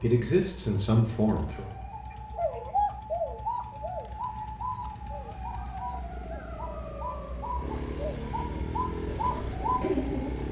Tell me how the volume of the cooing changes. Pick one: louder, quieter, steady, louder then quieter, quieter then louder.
quieter then louder.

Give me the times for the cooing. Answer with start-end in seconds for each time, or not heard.
1.9-10.4.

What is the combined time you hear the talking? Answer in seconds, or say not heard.
2 s.